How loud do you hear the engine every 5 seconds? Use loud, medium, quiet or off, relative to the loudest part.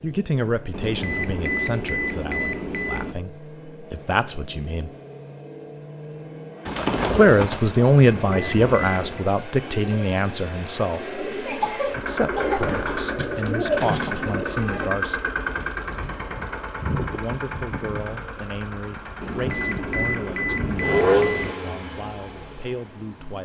quiet, quiet, medium, medium, loud.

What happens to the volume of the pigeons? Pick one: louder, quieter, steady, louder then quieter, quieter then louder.
quieter then louder.